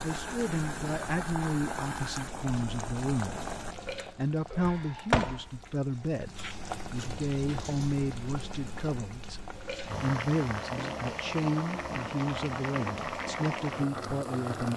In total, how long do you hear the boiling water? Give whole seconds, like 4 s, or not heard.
15 s.